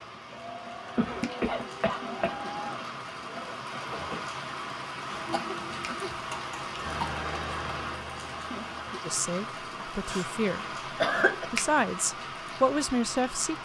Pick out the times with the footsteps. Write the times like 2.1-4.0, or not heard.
not heard.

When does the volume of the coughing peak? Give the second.
11 s.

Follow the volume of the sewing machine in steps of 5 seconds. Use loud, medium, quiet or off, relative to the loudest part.
loud, loud, off.